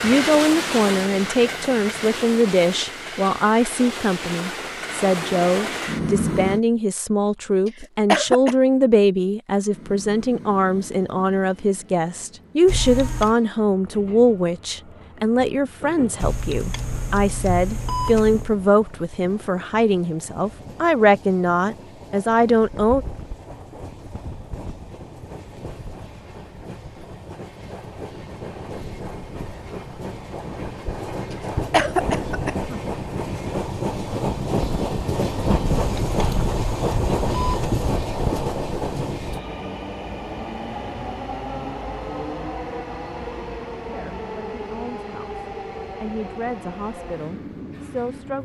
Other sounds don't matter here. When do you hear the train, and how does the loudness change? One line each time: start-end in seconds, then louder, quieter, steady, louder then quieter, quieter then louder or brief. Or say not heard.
0.0-6.6 quieter then louder
9.7-48.3 louder then quieter.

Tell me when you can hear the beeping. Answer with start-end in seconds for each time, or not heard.
12.7-13.3, 16.1-18.6, 35.6-37.9.